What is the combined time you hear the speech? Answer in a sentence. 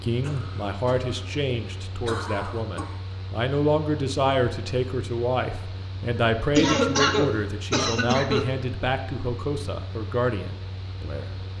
You can hear the speech for 11 seconds altogether.